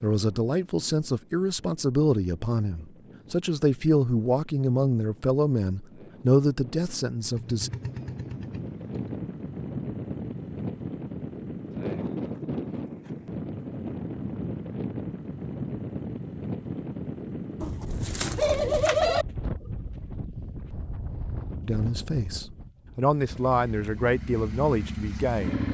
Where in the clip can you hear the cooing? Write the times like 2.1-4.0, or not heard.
17.6-19.2.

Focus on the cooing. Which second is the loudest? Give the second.
19 s.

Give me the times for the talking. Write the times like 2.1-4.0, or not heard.
0.0-7.7, 21.6-25.6.